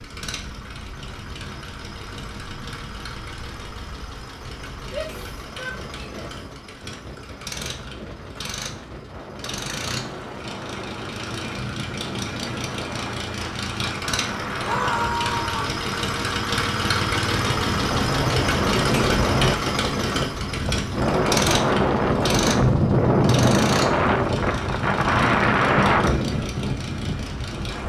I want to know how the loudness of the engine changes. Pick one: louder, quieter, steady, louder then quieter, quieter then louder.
louder then quieter.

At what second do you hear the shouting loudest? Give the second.
15 s.